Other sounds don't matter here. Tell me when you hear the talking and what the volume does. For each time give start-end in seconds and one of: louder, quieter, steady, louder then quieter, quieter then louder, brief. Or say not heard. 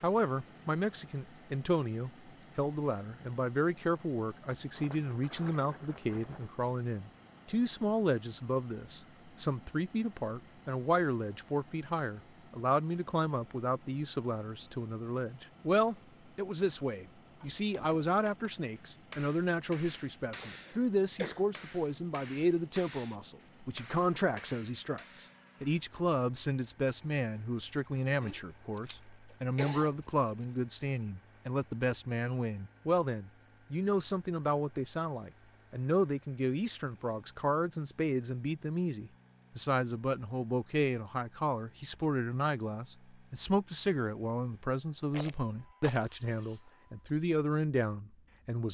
0.0-48.6 steady.